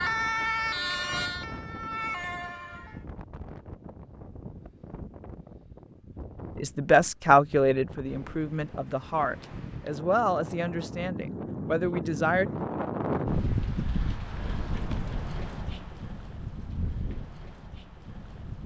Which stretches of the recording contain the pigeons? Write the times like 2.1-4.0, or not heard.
not heard.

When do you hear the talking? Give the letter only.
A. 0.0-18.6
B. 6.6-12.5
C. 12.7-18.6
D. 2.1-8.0
B.